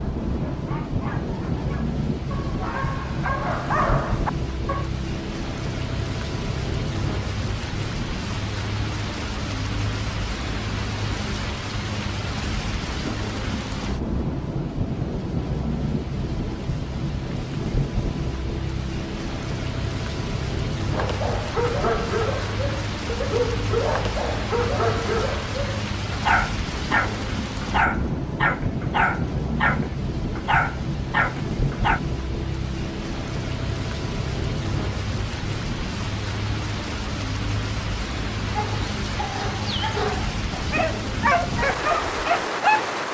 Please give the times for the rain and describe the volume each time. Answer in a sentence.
The rain can be heard from 0.0 to 43.0 s, at a steady volume.